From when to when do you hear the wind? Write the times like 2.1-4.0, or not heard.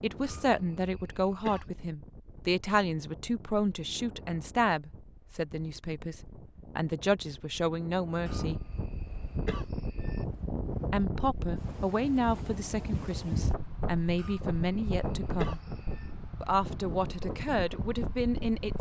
0.0-18.7.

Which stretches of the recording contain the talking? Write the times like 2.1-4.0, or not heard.
0.0-8.6, 10.9-15.6, 16.4-18.7.